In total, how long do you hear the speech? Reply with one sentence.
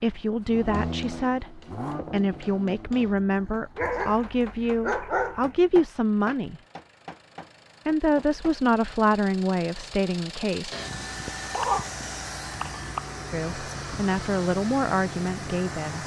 The speech can be heard for 12 seconds in total.